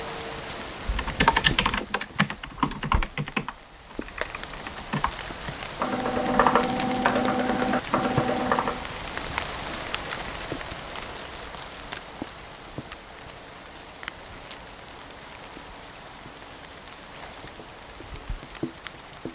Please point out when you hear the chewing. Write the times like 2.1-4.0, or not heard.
not heard.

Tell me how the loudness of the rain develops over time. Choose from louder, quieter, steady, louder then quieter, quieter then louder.
louder then quieter.